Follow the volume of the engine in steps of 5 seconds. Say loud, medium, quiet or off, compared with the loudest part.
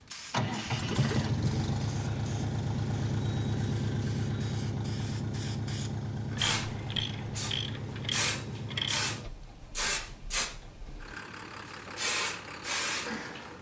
loud, medium, quiet.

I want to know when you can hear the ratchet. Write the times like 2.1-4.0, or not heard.
6.3-9.2.